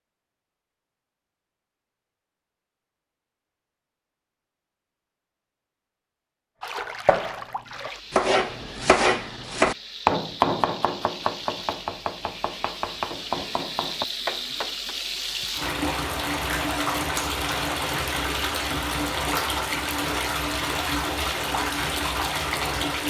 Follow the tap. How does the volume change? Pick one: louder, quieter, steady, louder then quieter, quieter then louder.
louder.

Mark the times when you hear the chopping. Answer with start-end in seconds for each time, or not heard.
7.0-14.9.